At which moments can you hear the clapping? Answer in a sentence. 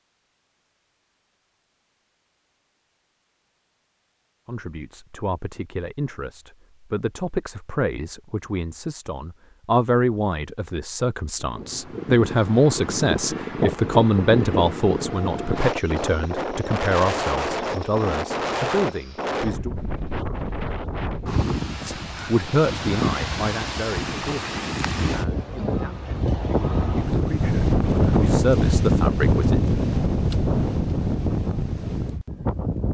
The clapping can't be heard in this clip.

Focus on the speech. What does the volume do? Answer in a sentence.
The loudness of the speech goes up, then down.